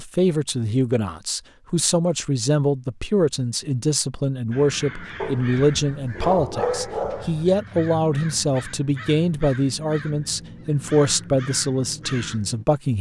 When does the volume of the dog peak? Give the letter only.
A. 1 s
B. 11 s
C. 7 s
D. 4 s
C.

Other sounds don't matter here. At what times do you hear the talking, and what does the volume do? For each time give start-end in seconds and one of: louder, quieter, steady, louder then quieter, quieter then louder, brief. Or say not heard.
0.0-12.9 steady.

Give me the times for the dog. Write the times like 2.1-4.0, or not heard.
5.2-7.5.